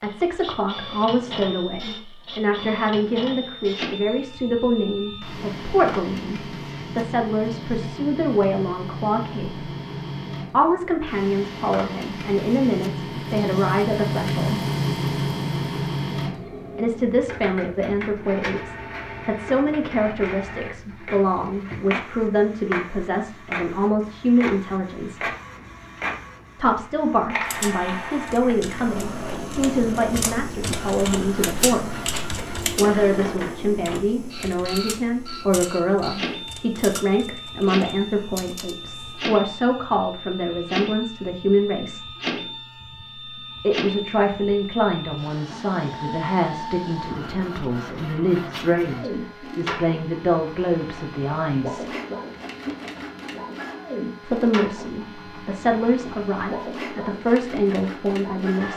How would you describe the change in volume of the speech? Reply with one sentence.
The loudness of the speech stays about the same.